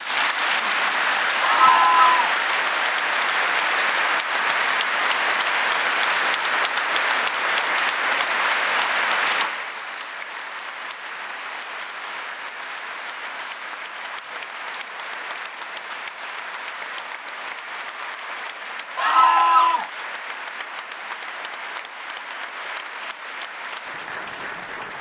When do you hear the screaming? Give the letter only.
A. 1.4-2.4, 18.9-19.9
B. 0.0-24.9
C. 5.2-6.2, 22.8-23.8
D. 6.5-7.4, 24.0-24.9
A.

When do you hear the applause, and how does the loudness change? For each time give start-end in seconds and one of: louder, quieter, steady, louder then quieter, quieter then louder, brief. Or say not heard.
0.0-24.9 quieter.